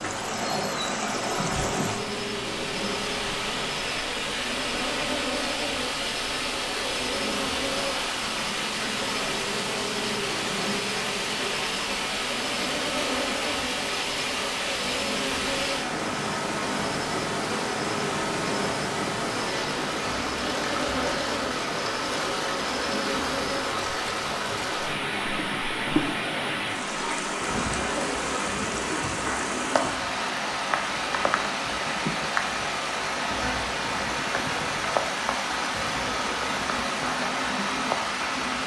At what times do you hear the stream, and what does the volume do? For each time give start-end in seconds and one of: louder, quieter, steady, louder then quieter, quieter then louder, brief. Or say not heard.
0.0-38.6 steady.